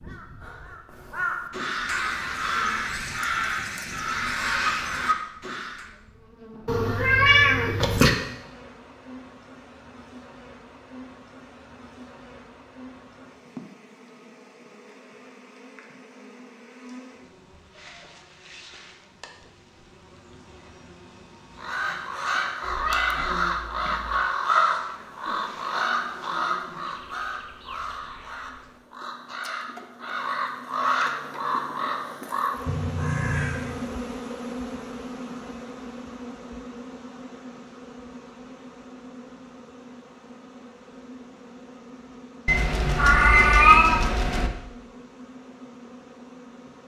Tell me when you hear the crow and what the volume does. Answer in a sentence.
The crow can be heard from 0.0 to 5.9 s, getting louder; and from 21.6 to 33.9 s, getting quieter then louder.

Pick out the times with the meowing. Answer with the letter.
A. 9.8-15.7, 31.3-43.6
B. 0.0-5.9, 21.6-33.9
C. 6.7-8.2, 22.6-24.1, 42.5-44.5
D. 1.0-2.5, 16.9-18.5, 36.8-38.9
C.